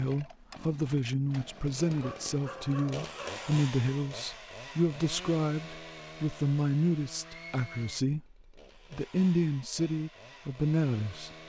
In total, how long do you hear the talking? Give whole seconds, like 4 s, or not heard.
11 s.